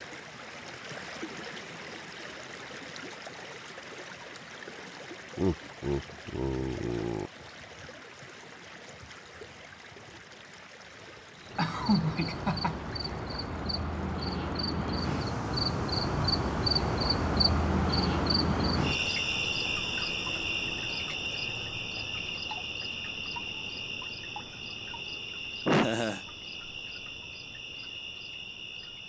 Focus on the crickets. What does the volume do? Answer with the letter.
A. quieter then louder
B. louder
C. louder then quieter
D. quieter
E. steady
C.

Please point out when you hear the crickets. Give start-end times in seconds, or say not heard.
11.3-29.0.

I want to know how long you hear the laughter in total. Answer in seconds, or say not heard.
4 s.